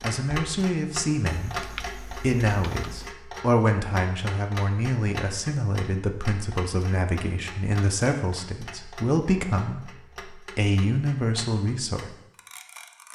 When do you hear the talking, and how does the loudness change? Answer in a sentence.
The talking can be heard from 0.0 to 12.1 s, at a steady volume.